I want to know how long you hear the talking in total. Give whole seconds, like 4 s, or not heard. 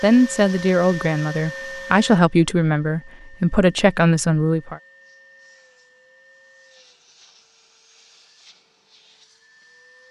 5 s.